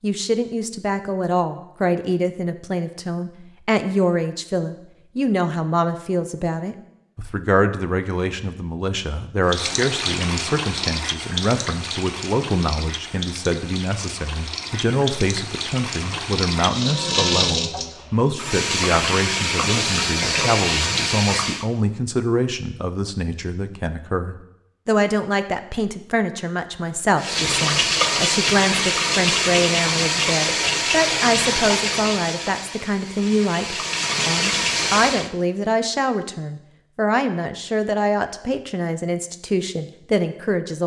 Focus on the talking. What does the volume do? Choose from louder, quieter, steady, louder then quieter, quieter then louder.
steady.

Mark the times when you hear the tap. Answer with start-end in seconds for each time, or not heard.
9.4-21.6, 27.1-35.3.